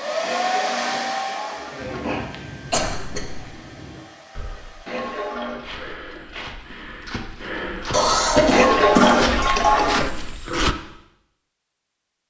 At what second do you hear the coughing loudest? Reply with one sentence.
The loudest moment of the coughing is at 8 seconds.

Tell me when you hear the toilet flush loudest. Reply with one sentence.
The loudest moment of the toilet flush is at 9 seconds.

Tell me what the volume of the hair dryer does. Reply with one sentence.
The loudness of the hair dryer goes down.